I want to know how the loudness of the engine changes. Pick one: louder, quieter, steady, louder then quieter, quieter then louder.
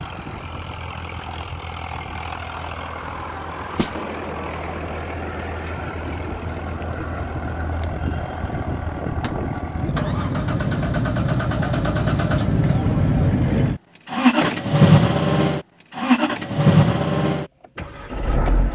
louder.